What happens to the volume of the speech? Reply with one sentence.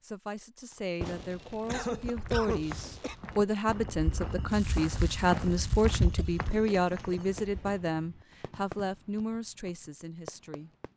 The volume of the speech goes up, then down.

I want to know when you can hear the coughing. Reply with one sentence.
The coughing can be heard from 1.6 to 3.1 s and from 6.0 to 7.4 s.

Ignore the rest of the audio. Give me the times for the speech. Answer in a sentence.
The speech can be heard from 0.0 to 10.9 s.